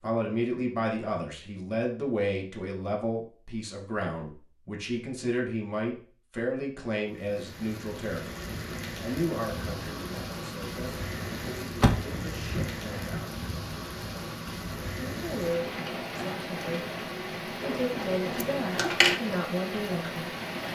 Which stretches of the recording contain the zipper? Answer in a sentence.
You can't hear the zipper here.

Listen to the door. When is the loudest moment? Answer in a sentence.
The loudest moment of the door is at 12 seconds.